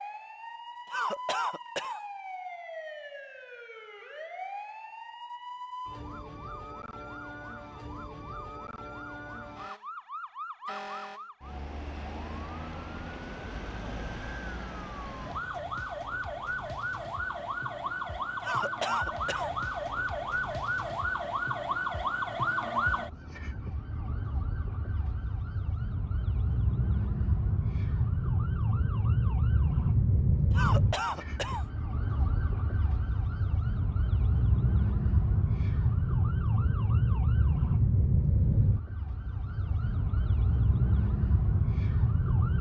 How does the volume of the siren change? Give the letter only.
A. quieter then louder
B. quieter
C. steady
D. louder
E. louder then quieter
D.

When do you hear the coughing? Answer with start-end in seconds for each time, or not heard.
0.9-2.0, 18.4-19.6, 30.5-31.6.